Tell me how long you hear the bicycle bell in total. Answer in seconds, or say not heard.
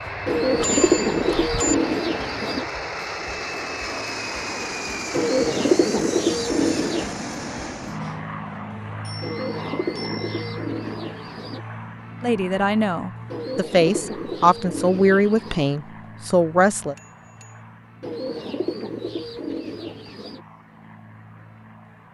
3 s.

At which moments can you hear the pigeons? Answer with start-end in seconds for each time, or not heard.
0.2-2.6, 5.1-7.2, 9.2-11.6, 13.3-15.7, 18.0-20.4.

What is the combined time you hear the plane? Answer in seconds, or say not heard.
22 s.